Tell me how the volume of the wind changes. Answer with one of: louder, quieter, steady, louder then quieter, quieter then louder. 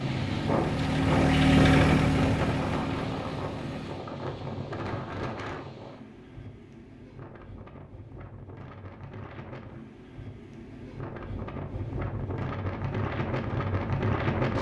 quieter then louder.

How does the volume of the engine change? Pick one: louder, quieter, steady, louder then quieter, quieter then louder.
louder then quieter.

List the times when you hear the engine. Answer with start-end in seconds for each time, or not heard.
0.0-4.1.